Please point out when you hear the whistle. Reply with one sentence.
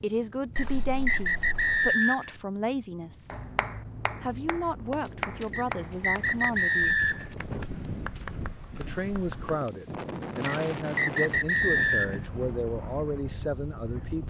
The whistle can be heard from 0.6 to 2.4 s, from 5.5 to 7.3 s and from 10.4 to 12.2 s.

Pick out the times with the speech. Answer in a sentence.
You can hear the speech from 0.0 to 3.3 s, from 4.2 to 7.0 s and from 8.8 to 14.2 s.